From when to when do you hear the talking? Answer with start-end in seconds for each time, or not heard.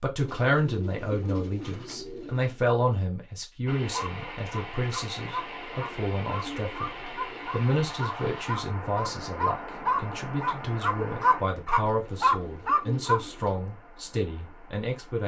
0.0-6.9, 7.5-15.2.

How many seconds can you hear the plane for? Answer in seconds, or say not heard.
not heard.